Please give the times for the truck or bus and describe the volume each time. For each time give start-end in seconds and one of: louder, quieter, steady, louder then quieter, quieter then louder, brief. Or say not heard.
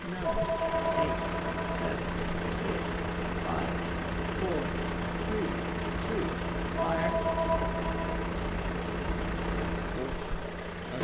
0.0-10.9 steady.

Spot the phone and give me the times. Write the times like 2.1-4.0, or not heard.
0.2-1.8, 6.8-8.1.